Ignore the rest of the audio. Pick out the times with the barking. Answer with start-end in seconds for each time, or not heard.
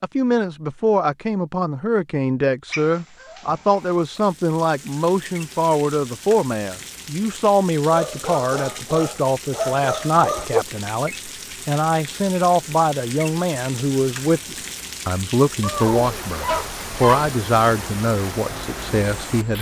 2.7-3.9, 7.9-10.7, 15.6-17.3.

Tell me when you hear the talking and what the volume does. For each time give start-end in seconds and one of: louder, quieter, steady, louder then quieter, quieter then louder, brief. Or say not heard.
0.0-19.5 steady.